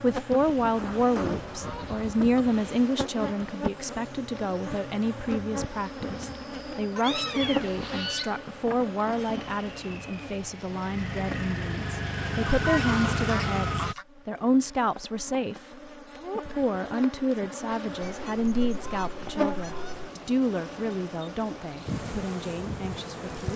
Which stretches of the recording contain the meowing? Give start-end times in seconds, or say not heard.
7.0-7.8.